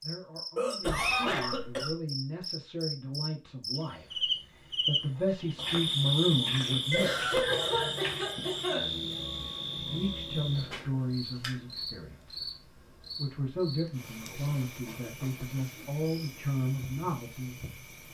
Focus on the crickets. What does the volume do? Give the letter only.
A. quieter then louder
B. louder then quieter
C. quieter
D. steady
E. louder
B.